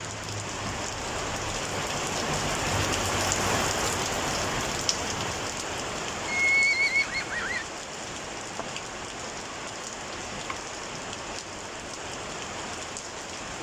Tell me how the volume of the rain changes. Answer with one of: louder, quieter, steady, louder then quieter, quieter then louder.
quieter.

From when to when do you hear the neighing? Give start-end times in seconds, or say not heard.
6.2-7.7.